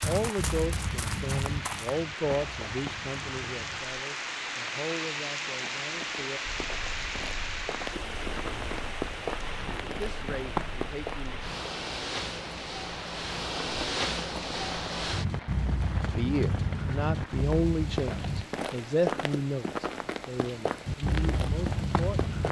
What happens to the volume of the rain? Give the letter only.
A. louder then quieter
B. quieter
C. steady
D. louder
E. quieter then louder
B.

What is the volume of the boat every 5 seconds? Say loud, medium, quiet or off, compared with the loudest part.
medium, quiet, loud, loud, loud.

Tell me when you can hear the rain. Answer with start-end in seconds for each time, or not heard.
0.0-22.4.